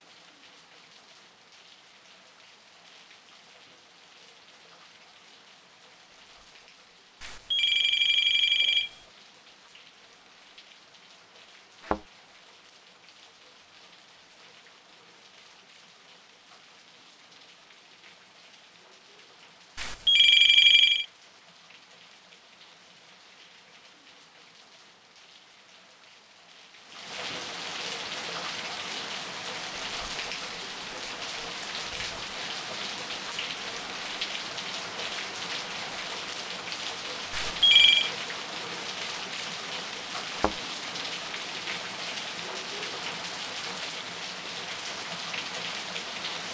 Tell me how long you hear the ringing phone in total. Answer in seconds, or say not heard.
4 s.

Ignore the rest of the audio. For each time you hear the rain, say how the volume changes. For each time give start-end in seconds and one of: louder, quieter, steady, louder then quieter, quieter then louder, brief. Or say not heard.
0.0-46.4 louder.